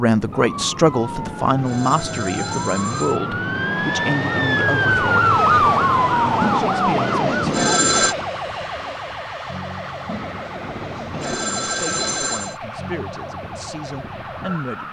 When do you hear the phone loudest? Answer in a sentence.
The volume of the phone peaks at 8 seconds.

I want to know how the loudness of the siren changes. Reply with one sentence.
The volume of the siren goes up, then down.